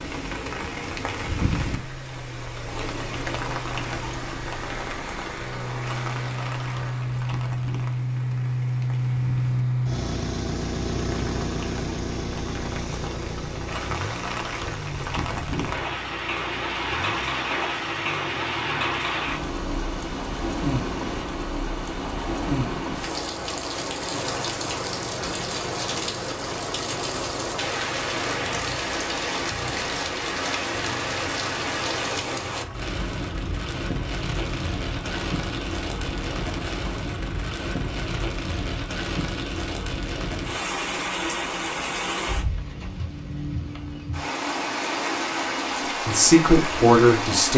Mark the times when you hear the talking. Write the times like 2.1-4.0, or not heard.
46.0-47.5.